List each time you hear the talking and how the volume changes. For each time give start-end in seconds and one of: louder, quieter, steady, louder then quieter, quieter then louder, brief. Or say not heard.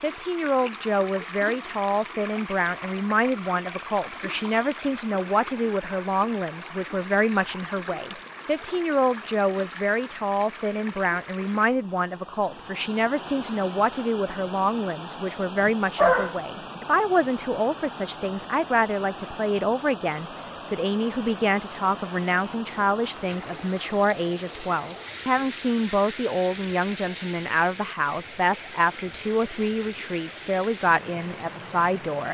0.0-32.2 steady.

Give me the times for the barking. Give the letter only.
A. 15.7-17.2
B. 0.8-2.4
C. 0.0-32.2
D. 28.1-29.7
A.